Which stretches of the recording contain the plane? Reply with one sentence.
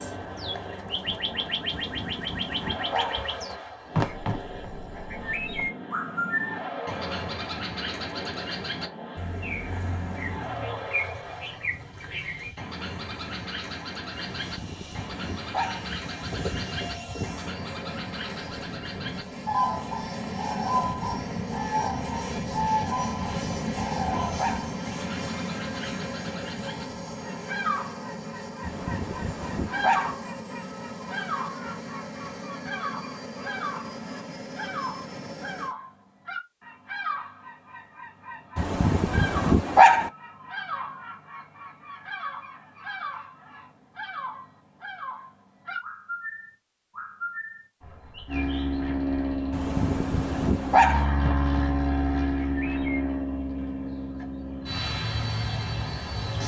The plane can be heard from 0.0 to 35.8 s and from 48.2 to 56.4 s.